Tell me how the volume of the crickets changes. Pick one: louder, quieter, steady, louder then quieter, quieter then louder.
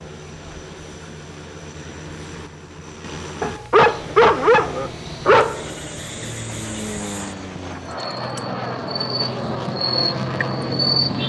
louder.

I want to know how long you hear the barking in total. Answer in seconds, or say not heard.
2 s.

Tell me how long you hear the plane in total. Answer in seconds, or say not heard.
11 s.